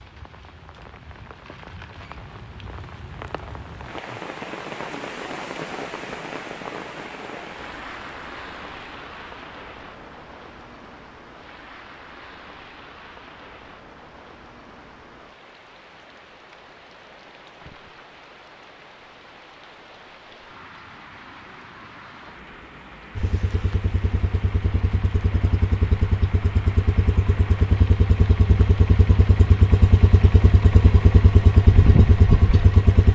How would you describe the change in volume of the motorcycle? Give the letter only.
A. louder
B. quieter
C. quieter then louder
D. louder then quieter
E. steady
A.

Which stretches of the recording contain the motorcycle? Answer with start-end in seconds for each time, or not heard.
23.1-33.1.